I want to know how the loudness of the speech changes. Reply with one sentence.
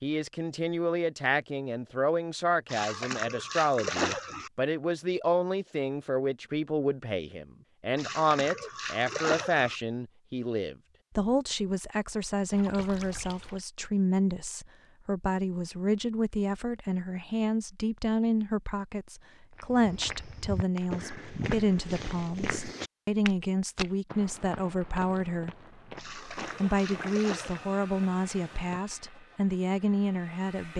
The volume of the speech stays about the same.